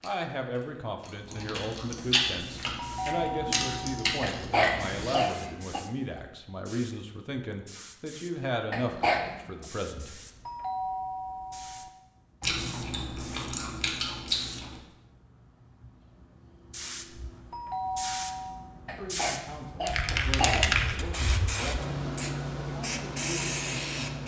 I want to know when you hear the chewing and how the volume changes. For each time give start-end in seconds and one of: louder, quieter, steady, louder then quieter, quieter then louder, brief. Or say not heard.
0.0-5.2 louder
12.4-14.8 brief.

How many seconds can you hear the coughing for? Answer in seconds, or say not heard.
4 s.